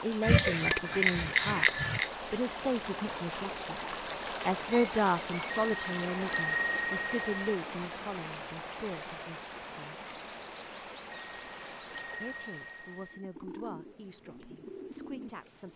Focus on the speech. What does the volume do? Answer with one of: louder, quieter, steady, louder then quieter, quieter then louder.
quieter.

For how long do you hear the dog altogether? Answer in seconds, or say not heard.
not heard.